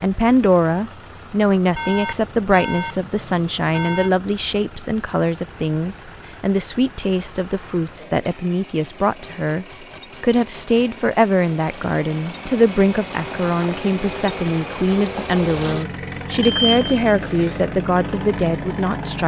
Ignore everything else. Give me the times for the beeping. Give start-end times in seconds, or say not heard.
1.8-4.1, 16.4-17.6.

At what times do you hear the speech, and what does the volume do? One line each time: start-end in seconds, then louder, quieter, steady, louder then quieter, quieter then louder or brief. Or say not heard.
0.0-19.2 steady.